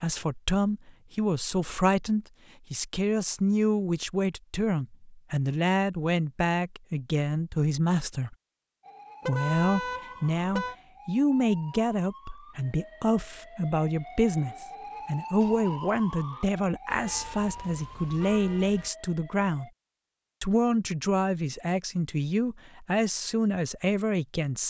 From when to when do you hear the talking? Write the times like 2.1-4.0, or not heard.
0.0-8.3, 9.2-19.7, 20.4-24.6.